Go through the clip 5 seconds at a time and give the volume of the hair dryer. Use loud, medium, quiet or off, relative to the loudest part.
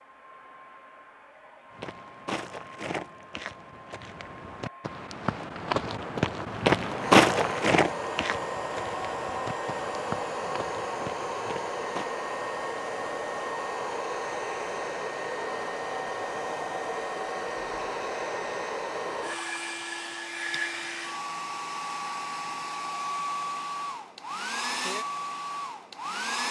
quiet, loud, loud, loud, loud, loud.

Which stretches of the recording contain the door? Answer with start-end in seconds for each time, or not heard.
not heard.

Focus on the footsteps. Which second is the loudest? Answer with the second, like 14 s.
7 s.